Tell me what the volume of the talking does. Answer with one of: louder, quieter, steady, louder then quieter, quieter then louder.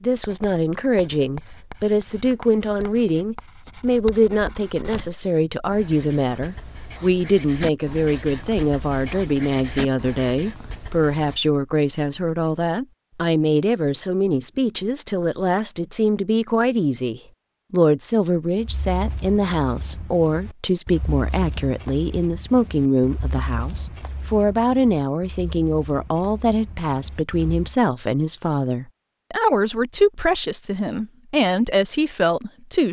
steady.